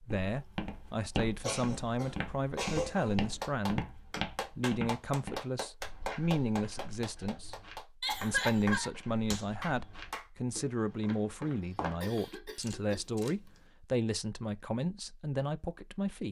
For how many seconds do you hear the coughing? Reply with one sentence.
You can hear the coughing for 4 seconds altogether.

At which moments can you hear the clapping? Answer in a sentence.
The clapping can be heard from 3.2 to 10.2 s.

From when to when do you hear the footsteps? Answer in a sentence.
The footsteps can be heard from 0.1 to 12.2 s.